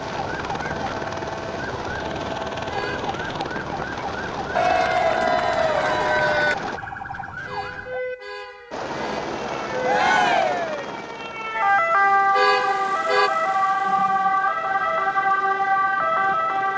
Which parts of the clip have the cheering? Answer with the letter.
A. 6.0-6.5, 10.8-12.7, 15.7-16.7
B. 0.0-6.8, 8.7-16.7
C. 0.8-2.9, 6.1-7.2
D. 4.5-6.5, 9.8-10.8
D.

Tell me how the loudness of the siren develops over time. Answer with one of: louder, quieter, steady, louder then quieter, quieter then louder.
louder.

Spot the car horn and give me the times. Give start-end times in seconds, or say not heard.
2.6-3.1, 7.5-9.3, 12.3-13.3.